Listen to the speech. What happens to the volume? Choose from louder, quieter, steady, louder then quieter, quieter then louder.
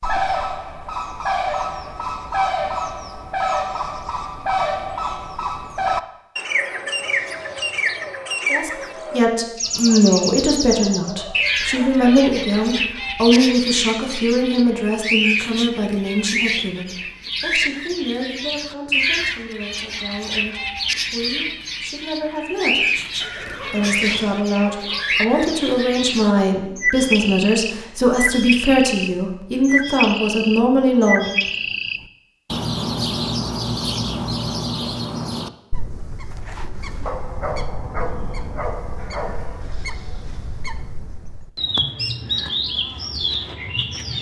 quieter then louder.